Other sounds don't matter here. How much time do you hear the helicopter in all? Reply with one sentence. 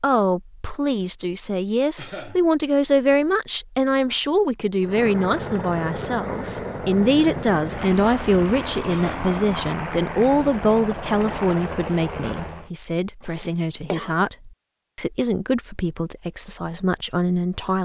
The helicopter can be heard for 8 seconds in total.